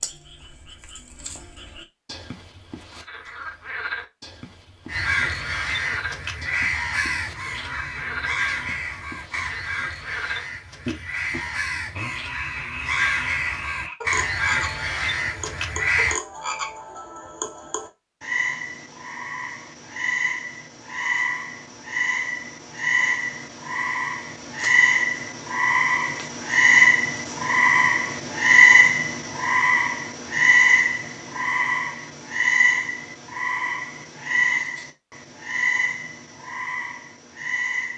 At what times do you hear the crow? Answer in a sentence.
The crow can be heard from 4.8 to 16.2 s.